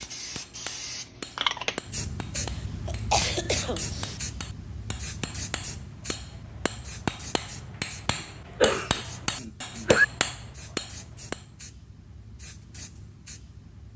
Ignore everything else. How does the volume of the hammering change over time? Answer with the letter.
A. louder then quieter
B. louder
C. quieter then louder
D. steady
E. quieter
B.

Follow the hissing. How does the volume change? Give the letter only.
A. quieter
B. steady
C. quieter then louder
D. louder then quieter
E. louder
A.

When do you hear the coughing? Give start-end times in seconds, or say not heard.
2.4-4.2, 8.1-10.1.